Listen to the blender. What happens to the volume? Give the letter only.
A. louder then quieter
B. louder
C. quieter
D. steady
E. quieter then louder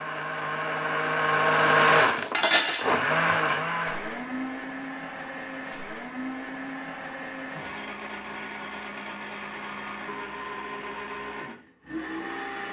C.